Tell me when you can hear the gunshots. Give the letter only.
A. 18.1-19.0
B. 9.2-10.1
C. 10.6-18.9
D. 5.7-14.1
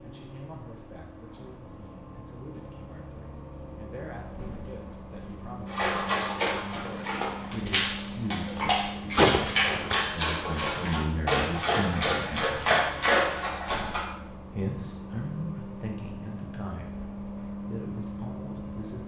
B.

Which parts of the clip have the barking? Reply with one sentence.
The barking can be heard from 5.7 to 14.1 s.